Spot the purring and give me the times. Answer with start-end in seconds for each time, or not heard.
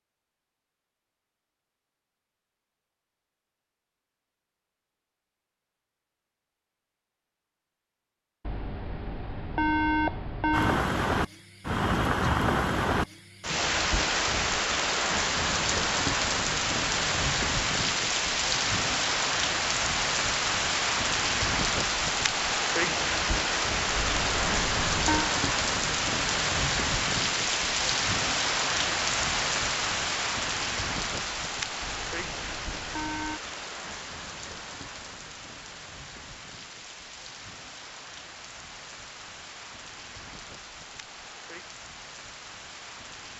not heard.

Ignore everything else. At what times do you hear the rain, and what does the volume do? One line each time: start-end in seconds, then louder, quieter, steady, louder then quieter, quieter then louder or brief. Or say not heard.
10.5-43.3 quieter.